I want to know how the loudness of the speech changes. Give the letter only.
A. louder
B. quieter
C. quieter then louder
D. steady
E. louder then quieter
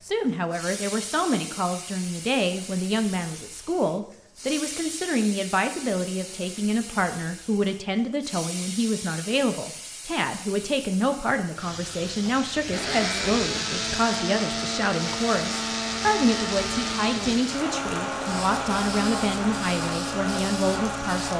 D.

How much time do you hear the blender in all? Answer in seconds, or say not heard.
9 s.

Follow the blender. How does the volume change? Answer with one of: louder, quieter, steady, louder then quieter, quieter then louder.
steady.